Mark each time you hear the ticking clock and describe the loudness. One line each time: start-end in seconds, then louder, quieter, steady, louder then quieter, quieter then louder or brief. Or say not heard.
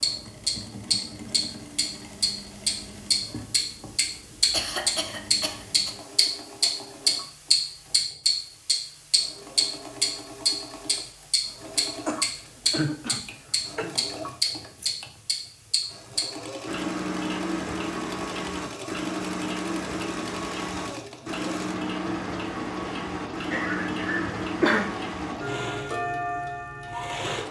0.0-27.4 quieter.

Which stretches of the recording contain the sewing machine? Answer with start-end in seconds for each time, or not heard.
0.0-27.4.